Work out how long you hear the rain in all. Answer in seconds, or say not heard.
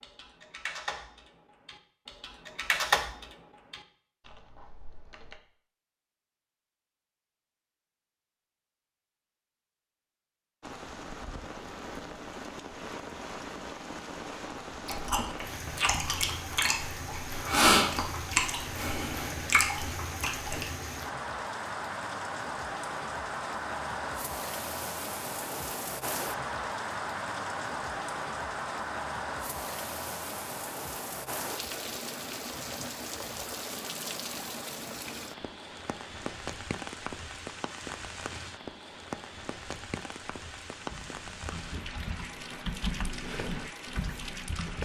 34 s.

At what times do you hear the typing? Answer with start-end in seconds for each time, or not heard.
0.0-5.4, 40.8-44.7.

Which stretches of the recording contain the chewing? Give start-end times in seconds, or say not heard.
14.8-20.6.